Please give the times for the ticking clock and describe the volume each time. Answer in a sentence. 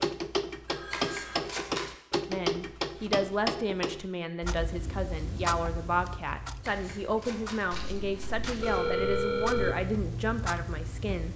The ticking clock can be heard from 0.0 to 11.3 s, getting quieter then louder.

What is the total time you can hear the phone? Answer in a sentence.
You can hear the phone for 3 seconds altogether.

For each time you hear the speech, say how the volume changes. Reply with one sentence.
The speech can be heard from 2.2 to 11.3 s, at a steady volume.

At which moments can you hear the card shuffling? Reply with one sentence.
You can hear the card shuffling from 0.9 to 1.9 s and from 6.6 to 8.9 s.